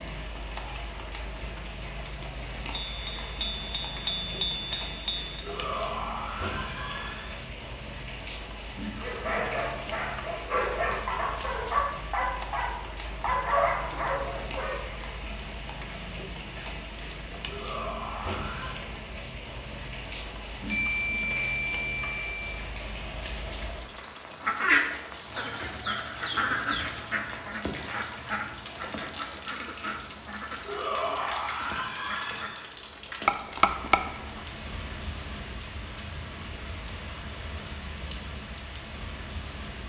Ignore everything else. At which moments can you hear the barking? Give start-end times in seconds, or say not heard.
8.9-14.8.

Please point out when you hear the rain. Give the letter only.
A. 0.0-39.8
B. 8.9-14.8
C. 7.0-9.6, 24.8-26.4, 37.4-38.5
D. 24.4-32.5
A.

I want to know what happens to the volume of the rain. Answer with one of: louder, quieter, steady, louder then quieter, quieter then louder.
steady.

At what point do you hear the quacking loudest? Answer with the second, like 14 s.
25 s.